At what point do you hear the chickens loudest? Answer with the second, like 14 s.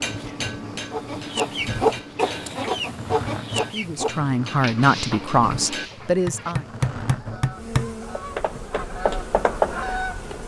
2 s.